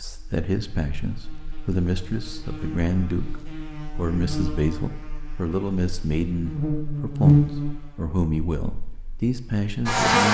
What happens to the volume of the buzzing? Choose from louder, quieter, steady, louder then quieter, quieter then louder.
louder then quieter.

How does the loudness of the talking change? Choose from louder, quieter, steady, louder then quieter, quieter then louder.
steady.